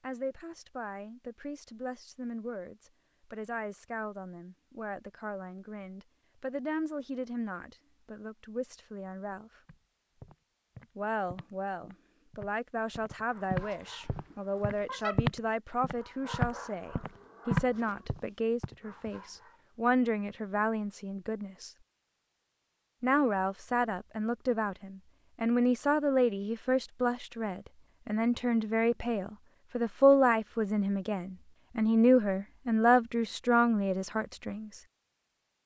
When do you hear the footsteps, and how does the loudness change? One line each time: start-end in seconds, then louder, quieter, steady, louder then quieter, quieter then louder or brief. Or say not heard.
9.7-18.2 louder.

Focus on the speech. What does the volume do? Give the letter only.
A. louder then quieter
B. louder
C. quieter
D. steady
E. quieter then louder
B.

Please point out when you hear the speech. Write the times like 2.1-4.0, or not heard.
0.0-9.5, 10.9-21.7, 23.0-34.8.